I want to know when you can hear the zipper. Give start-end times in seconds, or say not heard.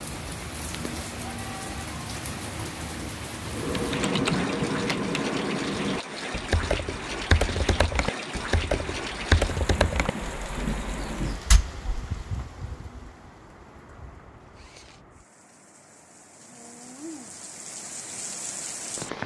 14.4-15.1.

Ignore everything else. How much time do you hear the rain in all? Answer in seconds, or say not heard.
19 s.